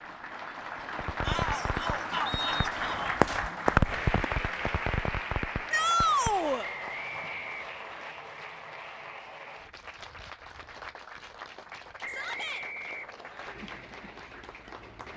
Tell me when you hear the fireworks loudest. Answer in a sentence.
The volume of the fireworks peaks at 4 seconds.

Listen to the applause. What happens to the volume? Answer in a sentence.
The volume of the applause goes down.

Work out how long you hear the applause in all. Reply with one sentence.
The applause can be heard for 15 seconds in total.